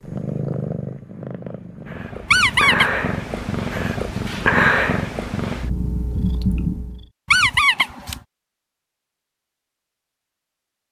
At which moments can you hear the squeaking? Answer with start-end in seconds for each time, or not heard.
2.2-3.0, 7.2-8.2.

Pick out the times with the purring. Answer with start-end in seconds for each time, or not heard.
0.0-7.0.